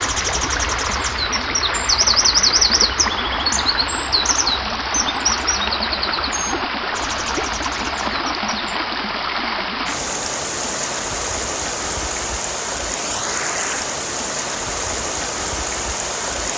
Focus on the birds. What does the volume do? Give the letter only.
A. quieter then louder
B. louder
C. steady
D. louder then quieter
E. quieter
D.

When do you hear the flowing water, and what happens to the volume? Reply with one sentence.
You can hear the flowing water from 0.0 to 16.5 s, at a steady volume.